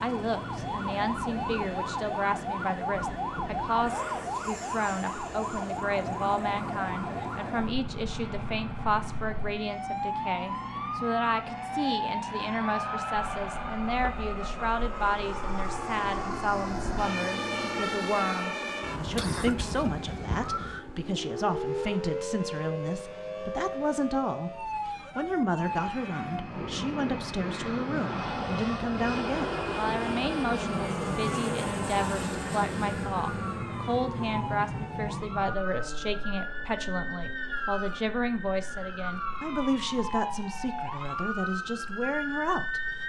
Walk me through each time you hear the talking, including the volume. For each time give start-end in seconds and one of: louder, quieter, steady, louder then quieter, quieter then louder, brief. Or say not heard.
0.0-42.8 steady.